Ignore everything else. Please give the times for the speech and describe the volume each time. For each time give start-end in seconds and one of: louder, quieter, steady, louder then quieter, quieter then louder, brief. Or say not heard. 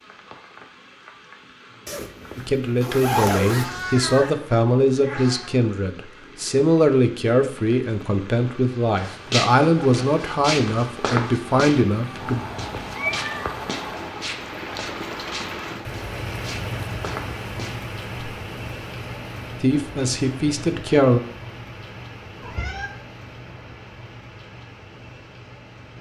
2.4-12.4 steady
19.6-21.2 brief.